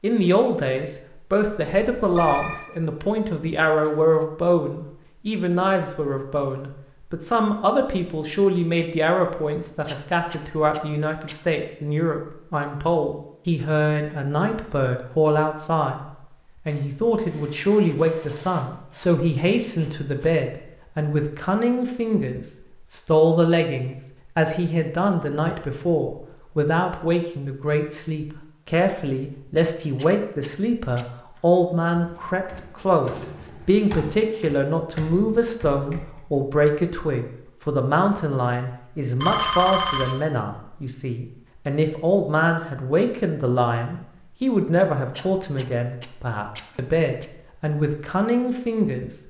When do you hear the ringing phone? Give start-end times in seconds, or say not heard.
1.7-2.6, 39.2-40.1.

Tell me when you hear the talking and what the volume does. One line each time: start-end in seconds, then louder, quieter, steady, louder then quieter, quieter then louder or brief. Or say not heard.
0.0-49.1 steady.